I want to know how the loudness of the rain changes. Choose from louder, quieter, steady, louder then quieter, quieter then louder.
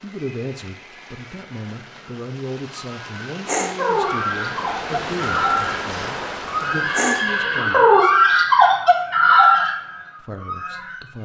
louder.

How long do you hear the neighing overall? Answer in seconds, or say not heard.
4 s.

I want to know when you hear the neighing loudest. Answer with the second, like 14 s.
8 s.